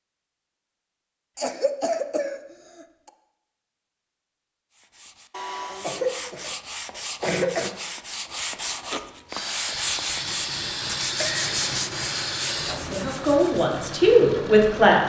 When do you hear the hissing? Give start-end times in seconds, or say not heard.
9.2-12.8.